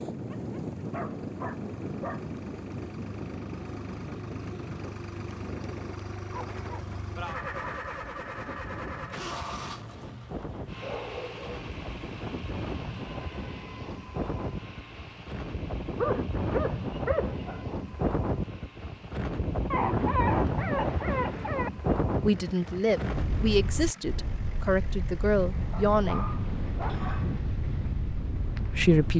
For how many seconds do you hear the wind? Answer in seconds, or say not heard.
29 s.